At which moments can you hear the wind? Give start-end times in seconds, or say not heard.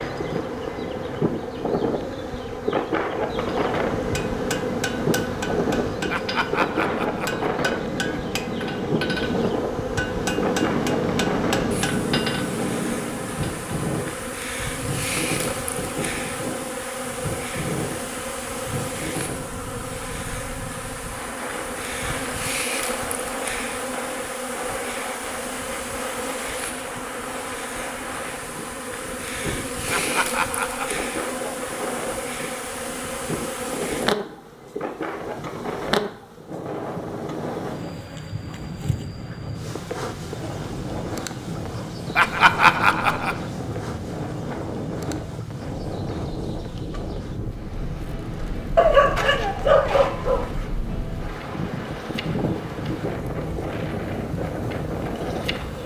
0.0-55.8.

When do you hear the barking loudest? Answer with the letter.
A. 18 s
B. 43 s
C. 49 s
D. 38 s
C.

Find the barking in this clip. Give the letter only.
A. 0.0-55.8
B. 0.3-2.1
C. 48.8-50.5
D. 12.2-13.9
C.